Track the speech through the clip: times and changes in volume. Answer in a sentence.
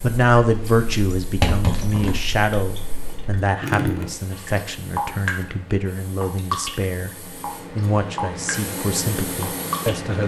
You can hear the speech from 0.0 to 7.1 s, getting quieter; and briefly from 7.8 to 10.2 s.